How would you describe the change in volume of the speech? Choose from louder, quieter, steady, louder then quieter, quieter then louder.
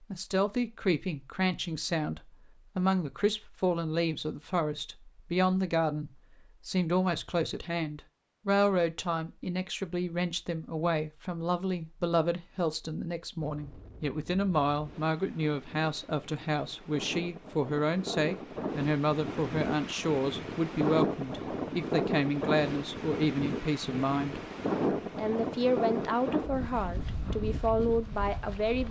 steady.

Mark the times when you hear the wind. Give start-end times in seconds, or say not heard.
13.4-28.8.